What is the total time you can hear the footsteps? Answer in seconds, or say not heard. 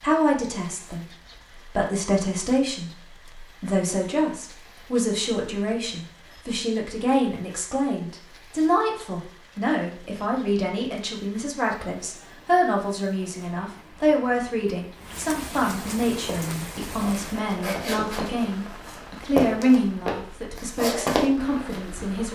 6 s.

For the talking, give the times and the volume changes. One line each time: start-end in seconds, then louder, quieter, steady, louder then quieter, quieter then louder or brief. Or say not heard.
0.0-22.3 steady.